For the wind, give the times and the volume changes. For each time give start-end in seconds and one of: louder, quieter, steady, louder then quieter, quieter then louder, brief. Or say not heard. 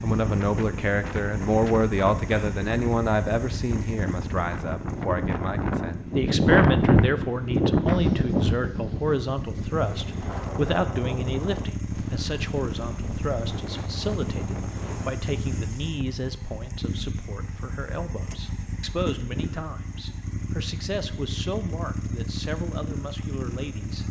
0.1-15.2 louder then quieter.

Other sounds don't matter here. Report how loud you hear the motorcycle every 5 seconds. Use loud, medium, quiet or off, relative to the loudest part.
loud, medium, loud, loud, loud.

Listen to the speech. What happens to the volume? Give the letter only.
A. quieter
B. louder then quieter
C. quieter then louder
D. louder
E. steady
A.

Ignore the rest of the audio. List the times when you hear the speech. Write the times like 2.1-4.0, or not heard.
0.0-24.0.